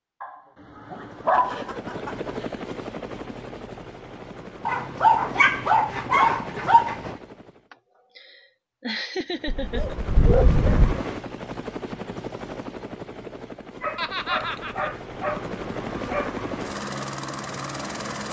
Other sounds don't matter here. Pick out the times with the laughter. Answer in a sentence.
The laughter can be heard from 1.3 to 2.7 s, from 7.7 to 9.9 s and from 13.9 to 14.9 s.